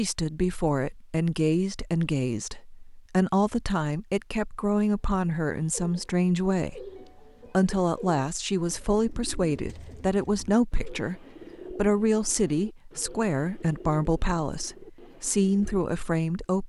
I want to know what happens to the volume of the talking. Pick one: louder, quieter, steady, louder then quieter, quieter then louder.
steady.